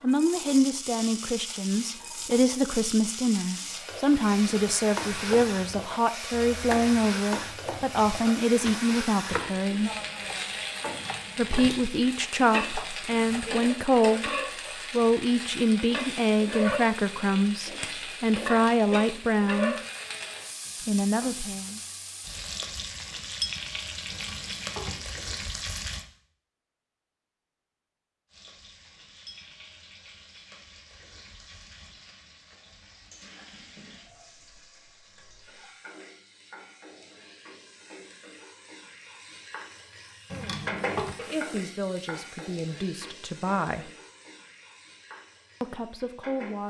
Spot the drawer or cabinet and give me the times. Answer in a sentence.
You can hear the drawer or cabinet from 10.8 to 11.8 s, from 24.1 to 25.1 s and from 40.3 to 41.1 s.